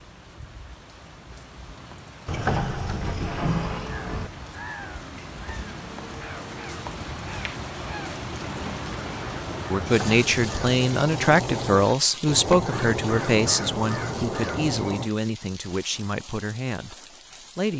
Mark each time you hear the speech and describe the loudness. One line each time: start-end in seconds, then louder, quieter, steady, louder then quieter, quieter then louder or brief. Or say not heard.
9.7-17.7 quieter.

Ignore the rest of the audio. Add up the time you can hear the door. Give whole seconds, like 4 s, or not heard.
3 s.